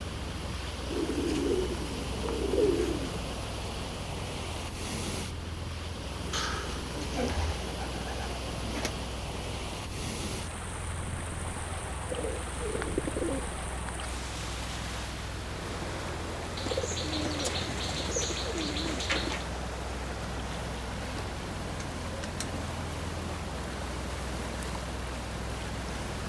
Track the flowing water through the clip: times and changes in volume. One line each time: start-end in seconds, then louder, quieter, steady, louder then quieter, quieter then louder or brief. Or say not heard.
0.0-26.2 steady.